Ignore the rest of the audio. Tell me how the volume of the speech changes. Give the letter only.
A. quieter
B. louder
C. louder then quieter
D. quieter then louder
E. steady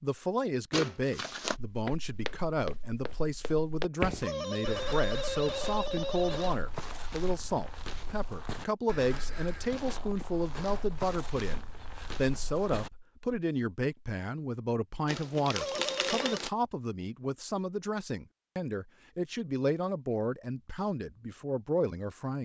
E.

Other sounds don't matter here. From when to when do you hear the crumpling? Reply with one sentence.
The crumpling can be heard from 0.7 to 1.6 s and from 15.1 to 16.5 s.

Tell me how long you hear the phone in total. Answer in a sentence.
You can hear the phone for 3 seconds altogether.